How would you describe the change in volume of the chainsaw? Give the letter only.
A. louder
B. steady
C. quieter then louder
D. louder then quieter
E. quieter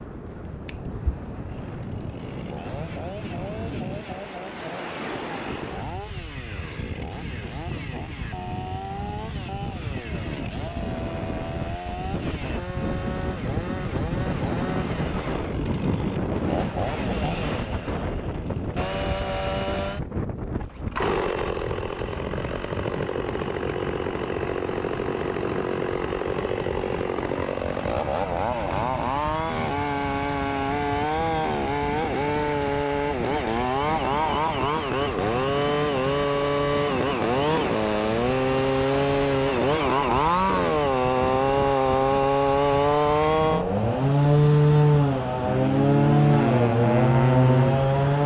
A.